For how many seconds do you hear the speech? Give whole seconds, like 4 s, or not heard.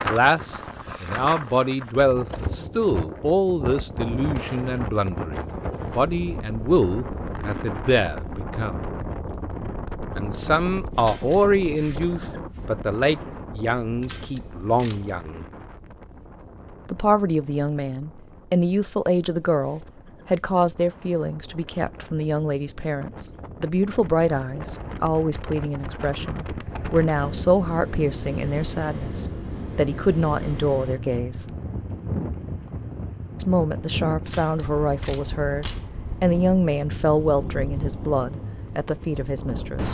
35 s.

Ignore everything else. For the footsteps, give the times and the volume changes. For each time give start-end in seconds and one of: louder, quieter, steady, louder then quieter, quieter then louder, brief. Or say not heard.
not heard.